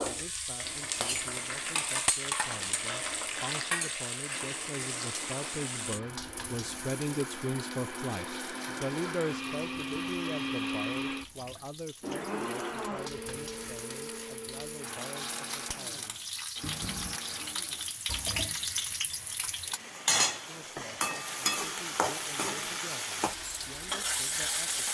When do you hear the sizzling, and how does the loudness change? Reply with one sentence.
The sizzling can be heard from 0.0 to 24.8 s, getting quieter then louder.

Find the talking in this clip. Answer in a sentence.
You can hear the talking from 0.0 to 16.2 s and from 20.4 to 24.8 s.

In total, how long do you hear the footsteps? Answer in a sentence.
The footsteps can't be heard in this clip.